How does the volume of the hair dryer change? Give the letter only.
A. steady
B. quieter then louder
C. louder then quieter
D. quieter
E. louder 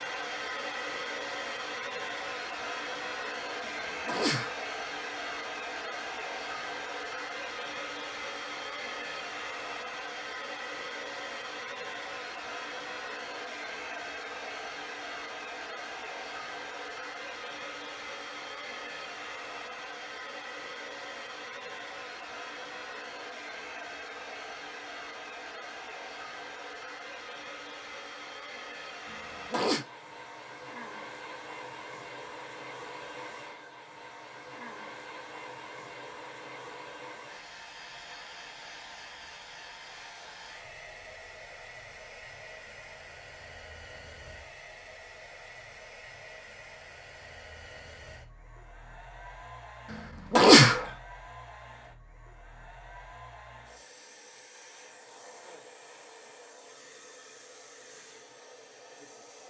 D.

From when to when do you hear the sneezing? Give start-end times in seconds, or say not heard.
4.0-4.5, 29.1-29.9, 50.3-50.9.